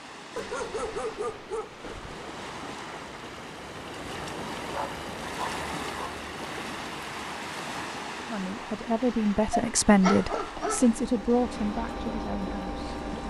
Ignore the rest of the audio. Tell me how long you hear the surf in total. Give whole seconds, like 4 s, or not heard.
13 s.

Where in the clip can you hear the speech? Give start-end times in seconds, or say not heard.
8.2-13.2.